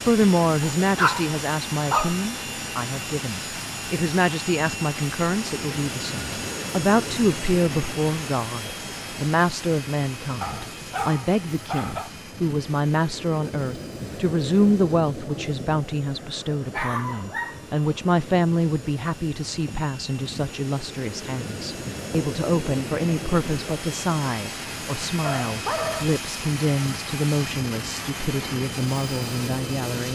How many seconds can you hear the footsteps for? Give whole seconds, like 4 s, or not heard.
not heard.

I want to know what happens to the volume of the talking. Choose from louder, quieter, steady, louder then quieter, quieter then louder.
steady.